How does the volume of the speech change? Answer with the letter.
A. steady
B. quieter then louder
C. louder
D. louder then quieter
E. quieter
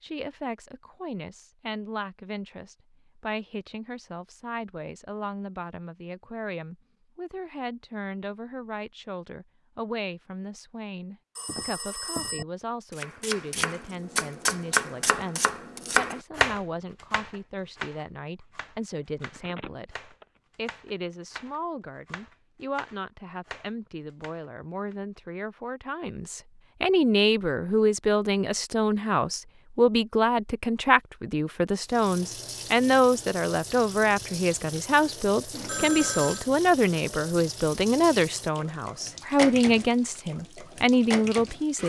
C.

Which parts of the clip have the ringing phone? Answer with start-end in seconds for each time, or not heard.
11.3-12.4, 19.2-20.2, 35.5-36.5.